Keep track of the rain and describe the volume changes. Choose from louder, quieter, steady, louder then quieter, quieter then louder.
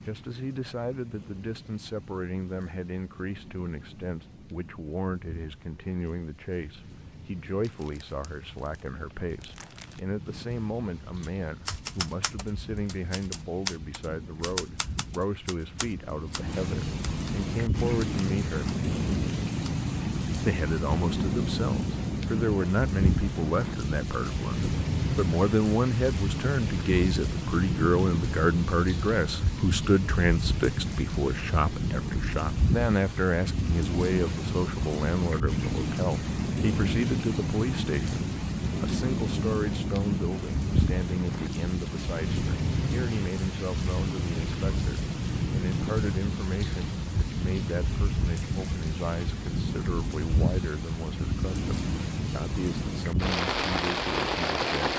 louder.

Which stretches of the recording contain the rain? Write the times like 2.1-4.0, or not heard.
0.0-54.9.